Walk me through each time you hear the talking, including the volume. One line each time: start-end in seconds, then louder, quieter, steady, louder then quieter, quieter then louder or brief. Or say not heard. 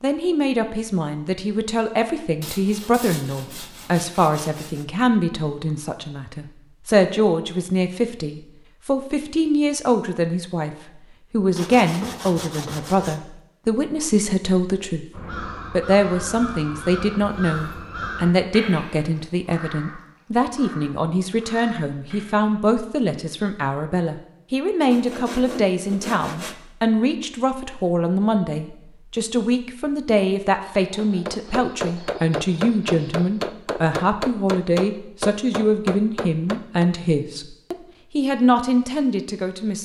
0.0-39.7 steady.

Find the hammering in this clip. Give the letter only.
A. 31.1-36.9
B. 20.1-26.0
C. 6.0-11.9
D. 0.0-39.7
A.